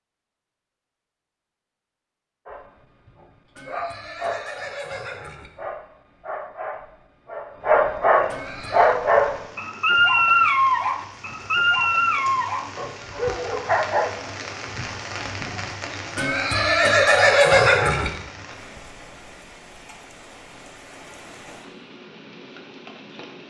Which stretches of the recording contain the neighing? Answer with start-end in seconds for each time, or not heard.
3.5-5.5, 8.2-8.9, 16.1-18.1.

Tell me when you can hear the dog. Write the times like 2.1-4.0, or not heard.
2.5-14.4.